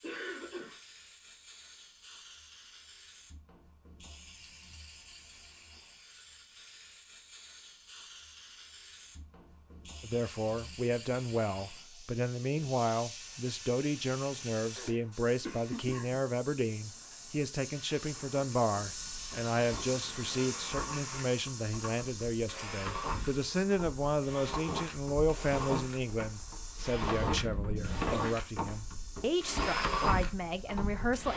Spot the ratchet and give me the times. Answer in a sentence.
You can't hear the ratchet here.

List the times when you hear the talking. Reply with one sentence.
You can hear the talking from 10.0 to 31.3 s.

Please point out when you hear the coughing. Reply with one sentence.
The coughing can be heard from 0.0 to 0.8 s, from 14.8 to 16.2 s and from 27.1 to 28.4 s.